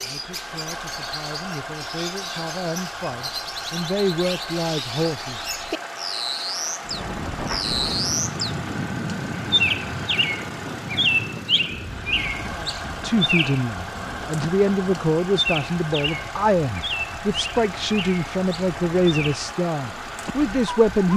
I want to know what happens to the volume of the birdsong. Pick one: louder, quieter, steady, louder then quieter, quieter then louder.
louder then quieter.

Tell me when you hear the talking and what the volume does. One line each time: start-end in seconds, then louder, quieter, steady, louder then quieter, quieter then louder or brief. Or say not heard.
0.0-5.4 louder
12.6-21.1 steady.